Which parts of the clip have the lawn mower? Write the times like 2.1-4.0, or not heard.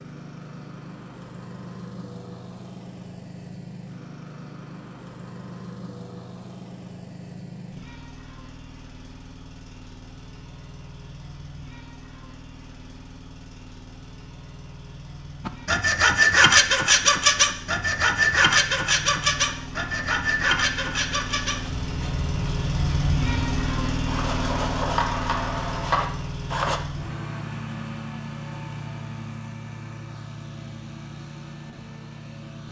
0.0-32.6.